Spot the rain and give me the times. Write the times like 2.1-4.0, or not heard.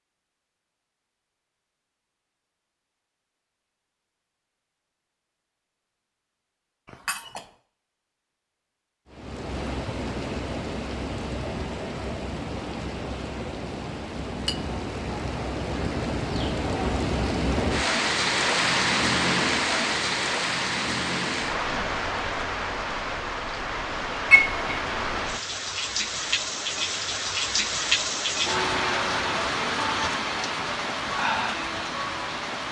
9.1-32.6.